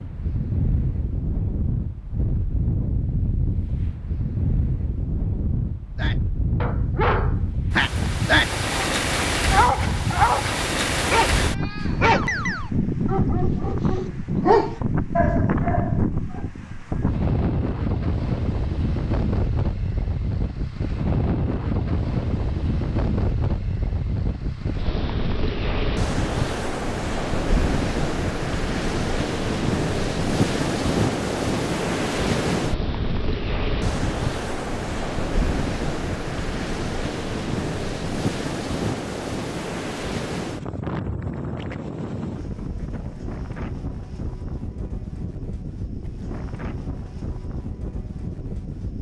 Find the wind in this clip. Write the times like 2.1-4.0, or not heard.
0.0-48.9.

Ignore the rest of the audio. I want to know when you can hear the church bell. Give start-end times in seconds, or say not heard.
not heard.